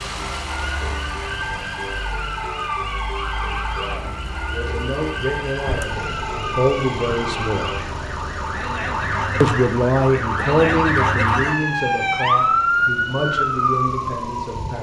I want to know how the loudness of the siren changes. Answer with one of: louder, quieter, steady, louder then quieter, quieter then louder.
louder.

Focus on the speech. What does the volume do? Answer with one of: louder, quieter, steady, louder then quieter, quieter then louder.
louder then quieter.